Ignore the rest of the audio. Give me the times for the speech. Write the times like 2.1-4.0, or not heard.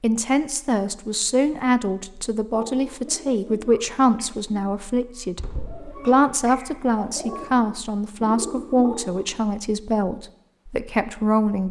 0.0-11.6.